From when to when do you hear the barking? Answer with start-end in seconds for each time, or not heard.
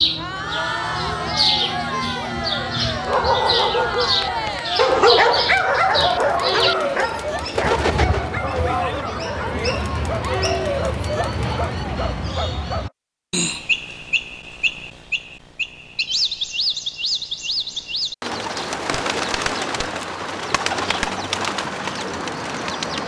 3.0-12.9.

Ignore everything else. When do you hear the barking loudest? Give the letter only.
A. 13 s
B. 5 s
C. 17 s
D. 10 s
B.